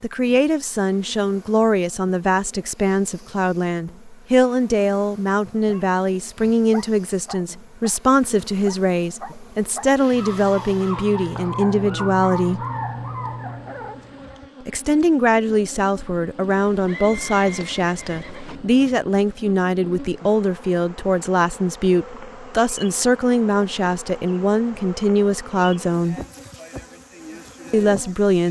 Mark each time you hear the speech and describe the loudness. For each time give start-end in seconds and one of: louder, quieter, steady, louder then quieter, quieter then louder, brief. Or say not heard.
0.0-12.7 steady
14.7-26.2 steady
27.7-28.4 brief.